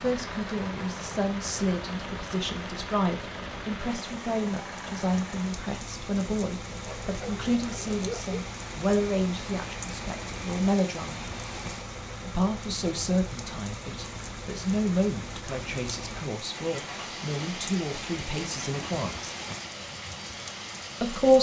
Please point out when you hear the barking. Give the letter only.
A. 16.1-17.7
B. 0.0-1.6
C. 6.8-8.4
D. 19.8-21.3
C.